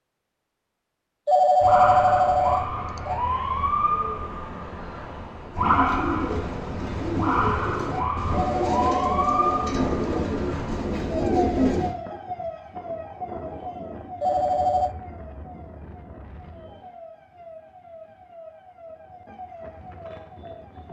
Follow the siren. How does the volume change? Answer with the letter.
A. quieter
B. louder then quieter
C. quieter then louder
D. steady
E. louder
A.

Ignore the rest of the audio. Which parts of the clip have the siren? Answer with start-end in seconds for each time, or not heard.
1.6-20.8.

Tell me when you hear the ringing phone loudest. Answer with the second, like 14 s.
2 s.